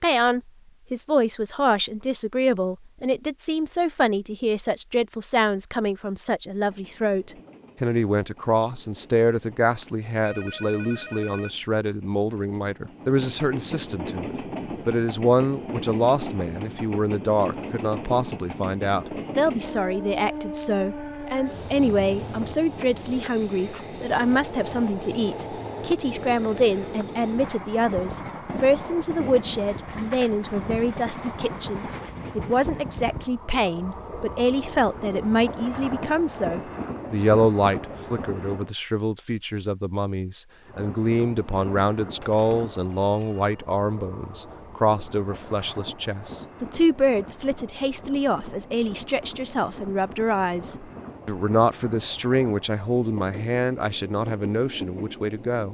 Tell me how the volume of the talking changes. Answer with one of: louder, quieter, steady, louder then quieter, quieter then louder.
steady.